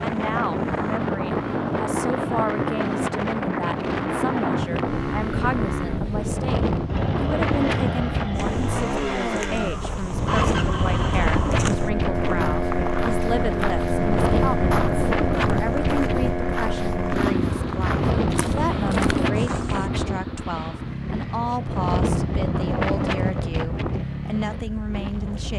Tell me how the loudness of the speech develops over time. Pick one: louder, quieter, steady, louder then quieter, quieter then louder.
steady.